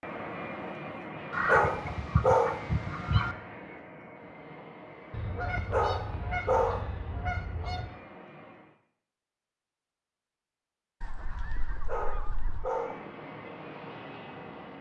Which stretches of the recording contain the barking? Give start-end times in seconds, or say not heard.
1.4-2.6, 5.7-6.8, 11.8-13.0.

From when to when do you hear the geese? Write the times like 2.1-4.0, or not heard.
1.3-3.4, 5.1-7.9, 11.0-12.7.